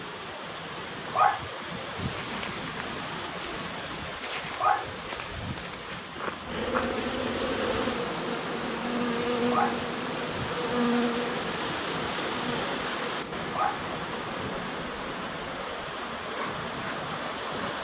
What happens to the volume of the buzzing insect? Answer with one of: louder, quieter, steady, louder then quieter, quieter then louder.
quieter.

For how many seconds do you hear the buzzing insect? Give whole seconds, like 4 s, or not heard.
11 s.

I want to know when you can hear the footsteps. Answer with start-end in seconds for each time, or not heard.
1.9-7.0.